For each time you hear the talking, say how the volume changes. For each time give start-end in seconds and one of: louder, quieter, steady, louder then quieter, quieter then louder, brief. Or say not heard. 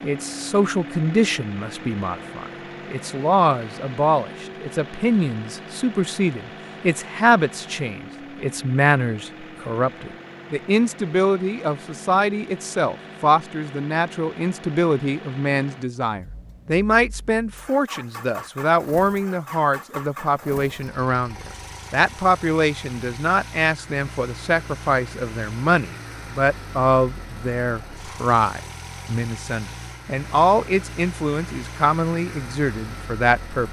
0.0-33.6 steady.